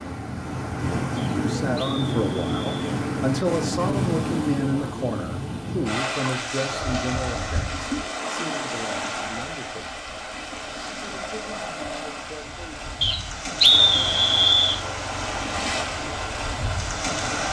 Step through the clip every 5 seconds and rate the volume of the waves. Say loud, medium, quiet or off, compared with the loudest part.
loud, loud, medium, loud.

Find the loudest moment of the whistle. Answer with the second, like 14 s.
14 s.